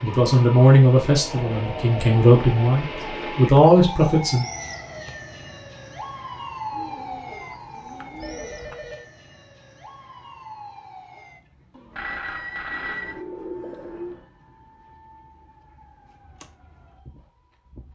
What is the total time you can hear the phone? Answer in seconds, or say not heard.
3 s.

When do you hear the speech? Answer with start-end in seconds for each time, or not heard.
0.0-4.5.